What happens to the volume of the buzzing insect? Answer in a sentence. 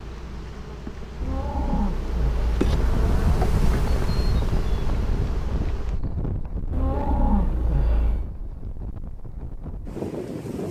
The volume of the buzzing insect goes up, then down.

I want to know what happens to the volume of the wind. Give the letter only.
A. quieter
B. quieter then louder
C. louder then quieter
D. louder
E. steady
B.